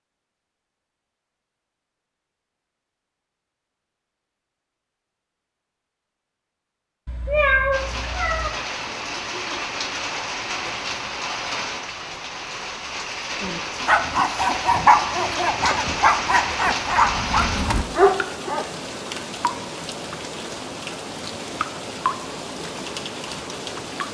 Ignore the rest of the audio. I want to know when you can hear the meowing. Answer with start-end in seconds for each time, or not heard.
7.0-8.5.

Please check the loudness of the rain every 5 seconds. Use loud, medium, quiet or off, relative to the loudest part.
off, loud, loud, loud, loud.